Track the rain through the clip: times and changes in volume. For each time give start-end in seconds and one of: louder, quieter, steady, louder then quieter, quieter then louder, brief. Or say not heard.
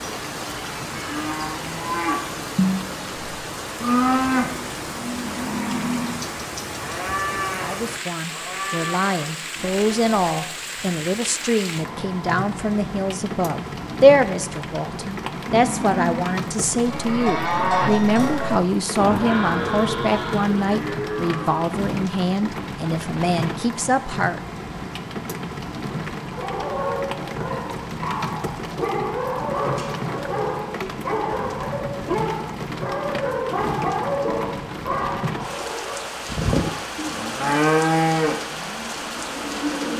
0.0-39.9 steady.